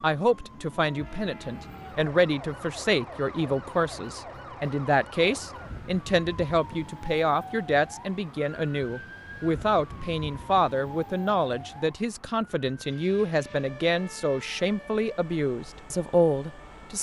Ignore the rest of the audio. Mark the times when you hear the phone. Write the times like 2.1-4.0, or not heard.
not heard.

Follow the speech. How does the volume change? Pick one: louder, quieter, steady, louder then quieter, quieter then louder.
steady.